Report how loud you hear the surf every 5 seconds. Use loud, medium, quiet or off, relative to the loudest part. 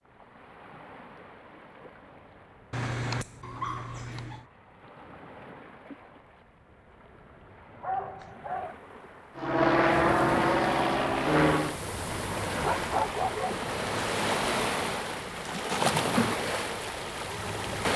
quiet, quiet, loud, loud.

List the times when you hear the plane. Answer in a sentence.
The plane can be heard from 9.3 to 11.8 s.